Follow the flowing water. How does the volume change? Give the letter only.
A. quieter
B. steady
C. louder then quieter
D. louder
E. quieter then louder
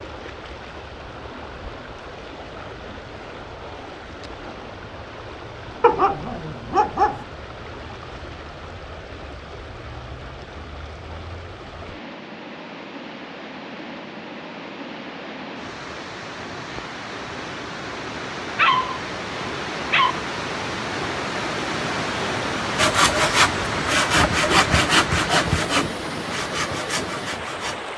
D.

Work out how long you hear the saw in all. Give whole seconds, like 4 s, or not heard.
5 s.